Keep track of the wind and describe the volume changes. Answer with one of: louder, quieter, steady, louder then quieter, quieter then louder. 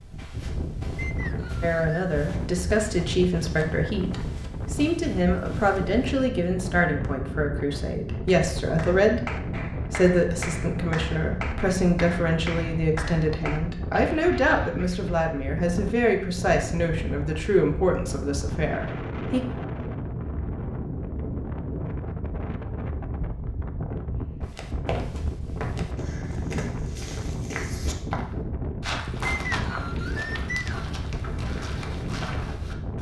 steady.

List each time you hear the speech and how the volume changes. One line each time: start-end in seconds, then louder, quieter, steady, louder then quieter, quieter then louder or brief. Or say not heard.
1.6-19.4 steady.